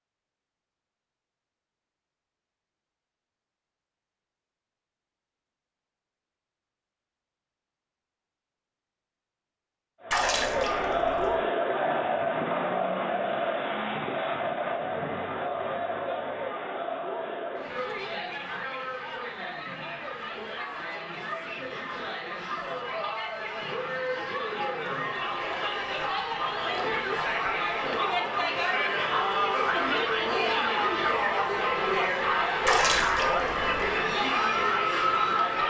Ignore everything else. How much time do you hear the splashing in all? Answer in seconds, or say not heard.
2 s.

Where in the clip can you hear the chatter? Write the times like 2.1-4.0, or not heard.
10.0-35.6.